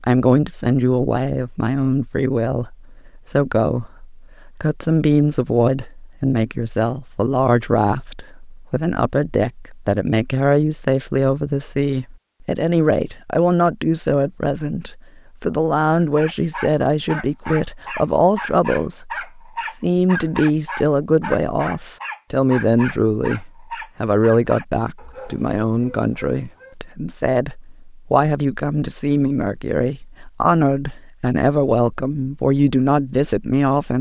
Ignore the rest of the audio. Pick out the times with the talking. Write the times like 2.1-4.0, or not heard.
0.0-33.9.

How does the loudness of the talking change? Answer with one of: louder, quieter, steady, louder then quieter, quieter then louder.
steady.